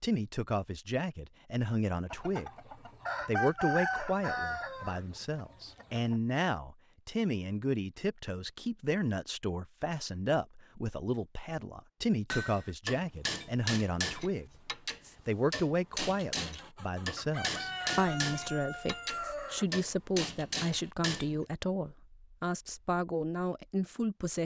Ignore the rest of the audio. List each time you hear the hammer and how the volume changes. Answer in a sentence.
You can hear the hammer from 12.3 to 21.4 s, at a steady volume.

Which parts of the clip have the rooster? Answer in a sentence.
You can hear the rooster from 2.1 to 6.2 s and from 16.4 to 19.6 s.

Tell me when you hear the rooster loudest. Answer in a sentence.
The volume of the rooster peaks at 4 seconds.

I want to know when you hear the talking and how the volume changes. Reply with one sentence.
The talking can be heard briefly from 0.0 to 2.5 s; and from 3.2 to 24.4 s, at a steady volume.